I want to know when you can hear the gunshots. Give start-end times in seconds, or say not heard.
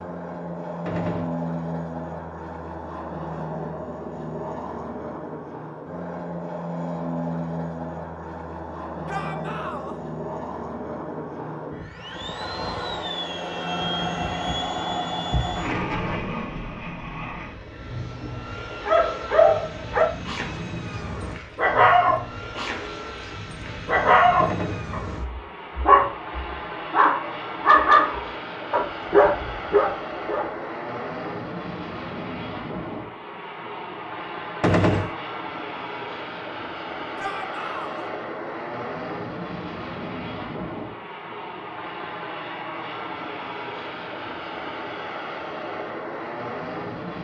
0.8-1.4, 24.4-24.9, 34.6-35.1.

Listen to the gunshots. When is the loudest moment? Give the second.
35 s.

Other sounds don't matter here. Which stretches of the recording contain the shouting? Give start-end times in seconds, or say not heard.
9.1-9.9, 37.1-38.0.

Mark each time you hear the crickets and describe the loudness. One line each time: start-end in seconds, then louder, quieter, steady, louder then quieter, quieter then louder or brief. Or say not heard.
not heard.